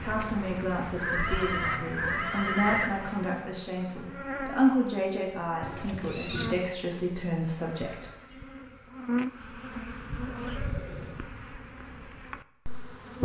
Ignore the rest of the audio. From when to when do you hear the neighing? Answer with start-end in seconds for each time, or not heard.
0.9-2.9, 5.6-6.6, 9.8-11.2.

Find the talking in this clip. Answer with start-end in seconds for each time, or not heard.
0.0-8.1.